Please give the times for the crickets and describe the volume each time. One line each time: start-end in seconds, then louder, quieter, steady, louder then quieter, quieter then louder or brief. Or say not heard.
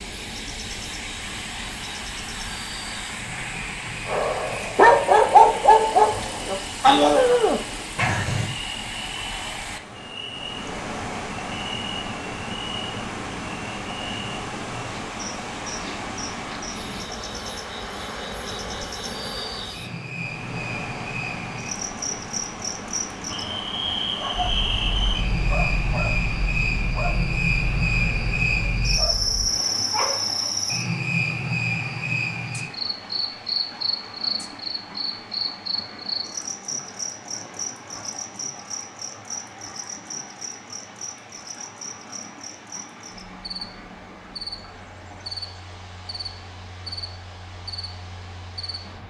0.0-49.0 louder then quieter.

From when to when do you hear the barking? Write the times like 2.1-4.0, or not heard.
4.0-8.5, 24.3-30.5.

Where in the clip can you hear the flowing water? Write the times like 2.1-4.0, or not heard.
0.0-49.0.